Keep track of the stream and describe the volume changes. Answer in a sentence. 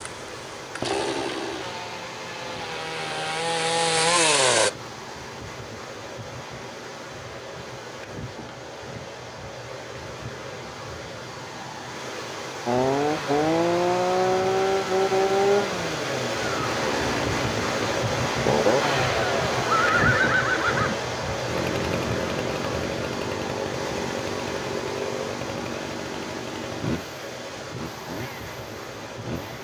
The loudness of the stream goes up, then down.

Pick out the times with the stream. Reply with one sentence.
The stream can be heard from 0.0 to 29.5 s.